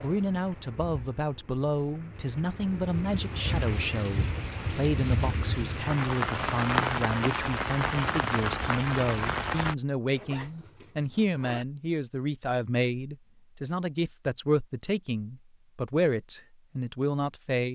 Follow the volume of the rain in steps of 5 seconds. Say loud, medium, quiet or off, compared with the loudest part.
medium, loud, off, off.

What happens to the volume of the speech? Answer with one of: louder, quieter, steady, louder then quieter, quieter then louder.
steady.